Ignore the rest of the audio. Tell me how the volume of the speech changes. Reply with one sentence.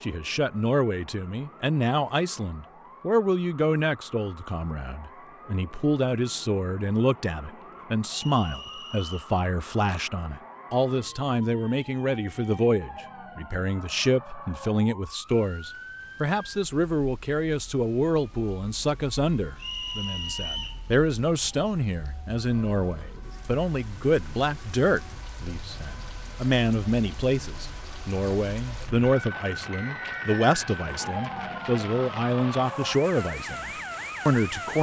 The volume of the speech stays about the same.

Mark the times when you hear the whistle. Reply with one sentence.
The whistle can be heard from 8.1 to 9.3 s, from 19.6 to 20.8 s and from 29.7 to 30.6 s.